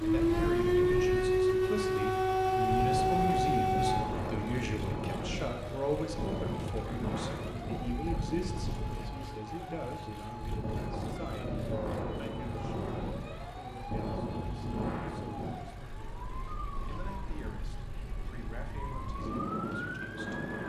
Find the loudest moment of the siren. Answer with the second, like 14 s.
1 s.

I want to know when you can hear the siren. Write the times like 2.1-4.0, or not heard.
0.0-20.6.